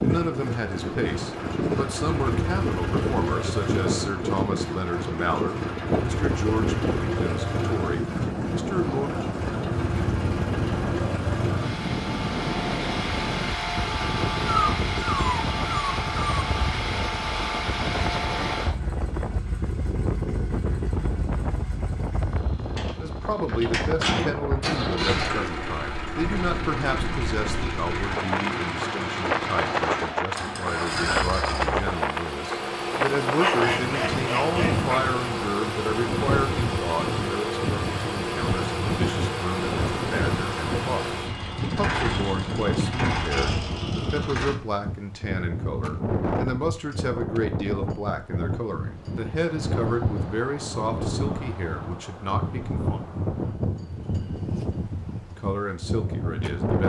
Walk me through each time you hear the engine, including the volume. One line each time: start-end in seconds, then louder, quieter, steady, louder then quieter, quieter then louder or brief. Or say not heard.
0.0-44.5 steady.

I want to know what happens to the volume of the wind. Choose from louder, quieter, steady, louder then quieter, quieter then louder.
steady.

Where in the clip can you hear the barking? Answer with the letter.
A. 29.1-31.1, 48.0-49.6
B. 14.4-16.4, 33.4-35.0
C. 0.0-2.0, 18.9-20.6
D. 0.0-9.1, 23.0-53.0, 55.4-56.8
B.